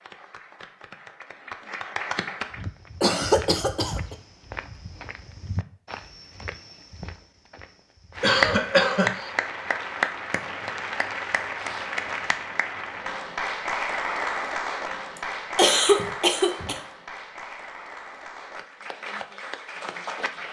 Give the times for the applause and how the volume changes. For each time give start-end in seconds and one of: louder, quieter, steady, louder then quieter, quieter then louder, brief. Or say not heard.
0.0-2.6 brief
8.2-20.4 quieter.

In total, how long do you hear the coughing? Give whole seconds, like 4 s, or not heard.
4 s.